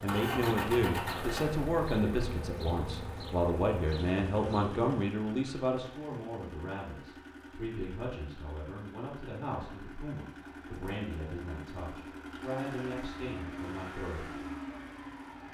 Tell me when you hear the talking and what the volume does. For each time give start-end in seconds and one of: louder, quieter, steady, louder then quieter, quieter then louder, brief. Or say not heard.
0.0-14.4 quieter.